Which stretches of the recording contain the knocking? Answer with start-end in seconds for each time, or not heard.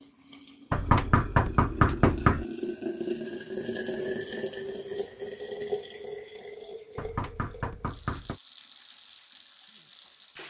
0.7-2.5, 7.0-8.4.